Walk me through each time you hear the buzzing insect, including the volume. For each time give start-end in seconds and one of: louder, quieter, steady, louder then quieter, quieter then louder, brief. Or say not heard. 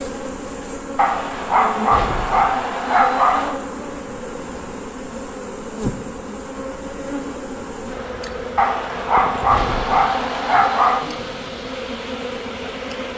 0.0-13.1 steady.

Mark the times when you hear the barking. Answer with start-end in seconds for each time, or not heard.
0.9-3.5, 8.6-11.0.